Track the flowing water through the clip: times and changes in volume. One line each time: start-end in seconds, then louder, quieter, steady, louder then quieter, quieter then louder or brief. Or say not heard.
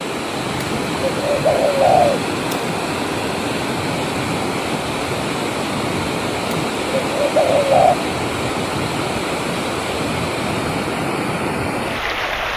0.0-12.5 steady.